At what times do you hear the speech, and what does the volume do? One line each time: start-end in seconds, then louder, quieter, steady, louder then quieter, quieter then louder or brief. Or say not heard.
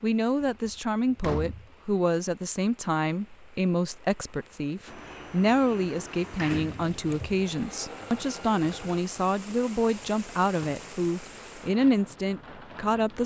0.0-13.2 steady.